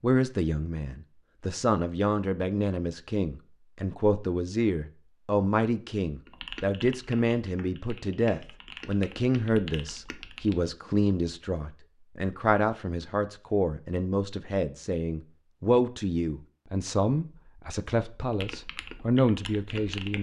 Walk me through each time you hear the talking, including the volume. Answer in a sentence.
You can hear the talking from 0.0 to 20.1 s, at a steady volume.